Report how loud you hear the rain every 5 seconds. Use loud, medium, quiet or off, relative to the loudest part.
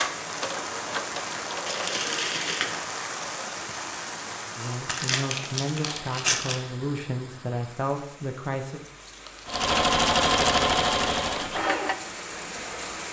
loud, medium, loud.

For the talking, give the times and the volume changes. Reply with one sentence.
The talking can be heard from 4.5 to 8.8 s, at a steady volume.